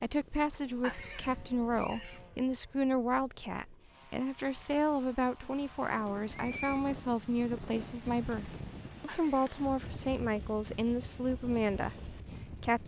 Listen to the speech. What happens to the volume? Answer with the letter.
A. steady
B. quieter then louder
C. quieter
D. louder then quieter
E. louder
A.